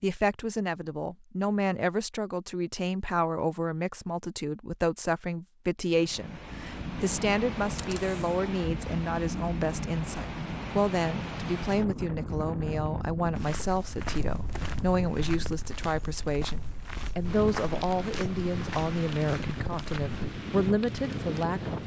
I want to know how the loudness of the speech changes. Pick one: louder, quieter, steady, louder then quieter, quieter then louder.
steady.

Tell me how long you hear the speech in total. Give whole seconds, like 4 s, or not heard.
22 s.